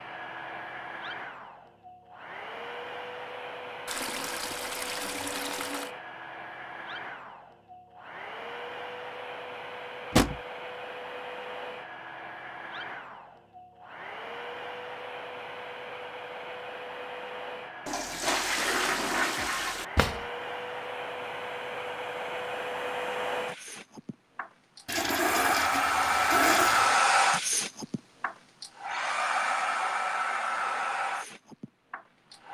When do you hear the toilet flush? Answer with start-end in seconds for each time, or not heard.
3.9-5.9, 17.9-19.9, 24.9-26.9.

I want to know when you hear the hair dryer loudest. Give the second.
27 s.